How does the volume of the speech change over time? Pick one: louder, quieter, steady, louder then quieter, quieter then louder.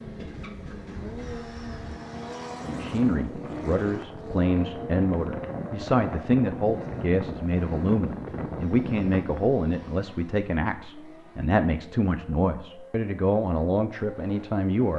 steady.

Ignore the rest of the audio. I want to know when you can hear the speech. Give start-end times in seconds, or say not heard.
2.6-14.9.